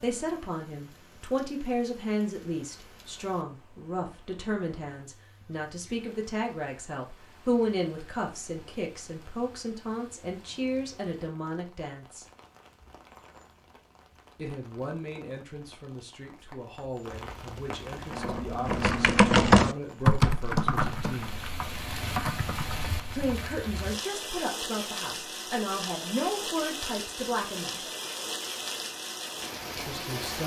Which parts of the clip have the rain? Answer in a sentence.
The rain can be heard from 0.0 to 30.4 s.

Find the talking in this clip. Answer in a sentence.
The talking can be heard from 0.0 to 12.2 s, from 14.3 to 21.4 s, from 23.1 to 27.8 s and from 29.8 to 30.4 s.